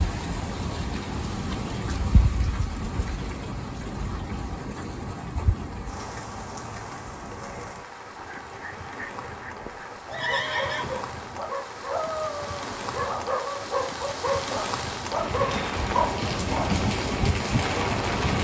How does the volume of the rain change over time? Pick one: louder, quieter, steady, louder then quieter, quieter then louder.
quieter then louder.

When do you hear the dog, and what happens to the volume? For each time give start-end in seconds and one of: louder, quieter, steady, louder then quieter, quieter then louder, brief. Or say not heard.
8.1-16.8 louder.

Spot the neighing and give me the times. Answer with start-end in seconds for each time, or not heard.
10.1-11.1.